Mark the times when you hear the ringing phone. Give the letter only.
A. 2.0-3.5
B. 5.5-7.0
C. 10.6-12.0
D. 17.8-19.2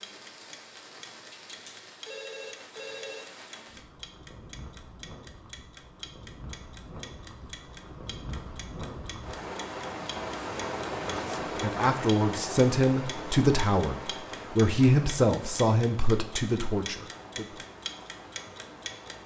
A.